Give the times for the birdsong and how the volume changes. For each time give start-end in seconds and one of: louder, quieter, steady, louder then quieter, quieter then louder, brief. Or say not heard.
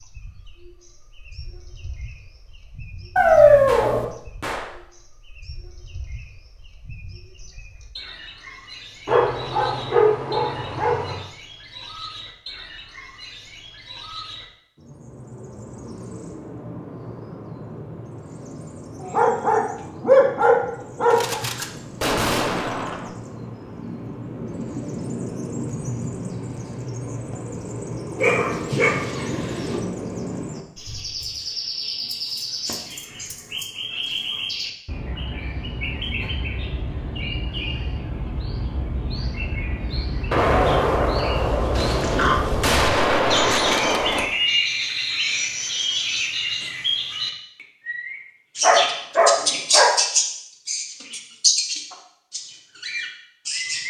0.0-53.8 louder.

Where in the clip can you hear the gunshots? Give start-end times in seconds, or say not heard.
3.6-4.8, 21.1-23.1, 40.3-44.3.